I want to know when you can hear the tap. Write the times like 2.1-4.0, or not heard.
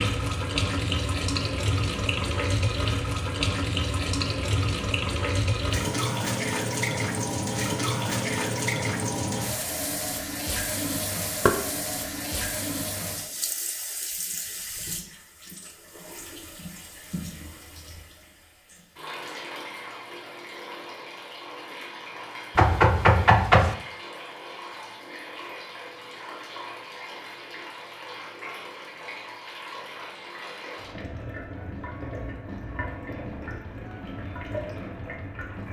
0.0-35.6.